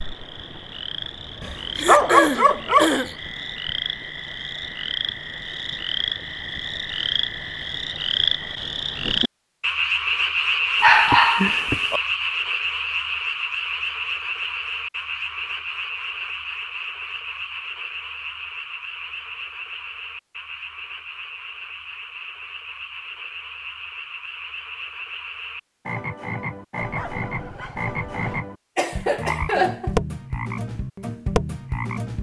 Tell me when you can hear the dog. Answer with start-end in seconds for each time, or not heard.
1.4-2.9, 10.8-12.0, 26.8-28.4.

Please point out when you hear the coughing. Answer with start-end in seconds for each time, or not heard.
1.8-3.1, 28.8-29.9.